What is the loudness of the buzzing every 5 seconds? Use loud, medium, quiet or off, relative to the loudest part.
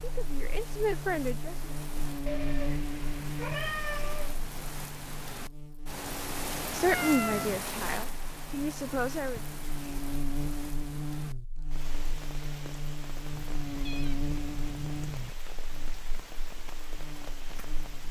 loud, medium, loud, medium.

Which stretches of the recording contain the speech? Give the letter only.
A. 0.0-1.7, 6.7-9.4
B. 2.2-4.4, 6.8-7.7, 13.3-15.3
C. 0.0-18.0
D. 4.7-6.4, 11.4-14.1
A.